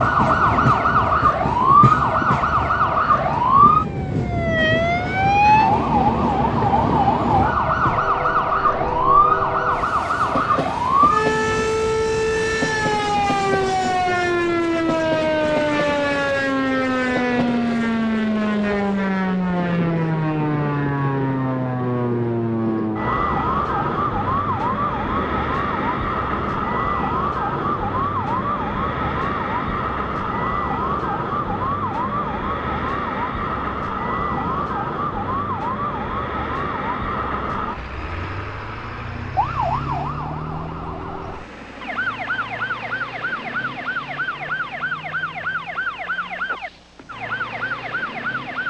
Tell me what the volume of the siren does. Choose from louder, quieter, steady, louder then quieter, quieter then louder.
quieter.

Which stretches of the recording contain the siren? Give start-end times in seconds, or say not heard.
0.0-48.6.